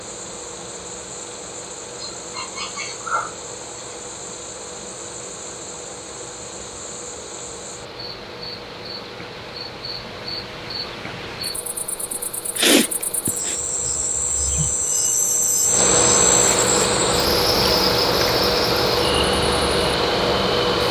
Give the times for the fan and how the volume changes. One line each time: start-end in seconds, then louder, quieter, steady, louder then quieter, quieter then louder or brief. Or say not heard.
0.0-20.8 louder.